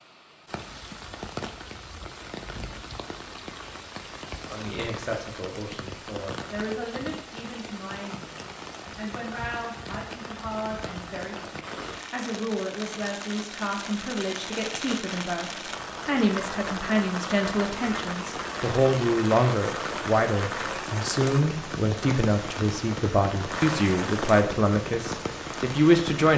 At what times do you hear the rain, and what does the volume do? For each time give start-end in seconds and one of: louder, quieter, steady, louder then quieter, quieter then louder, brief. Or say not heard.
0.0-26.3 louder.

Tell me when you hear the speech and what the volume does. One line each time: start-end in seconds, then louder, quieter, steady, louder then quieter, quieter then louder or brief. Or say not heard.
4.3-26.3 louder.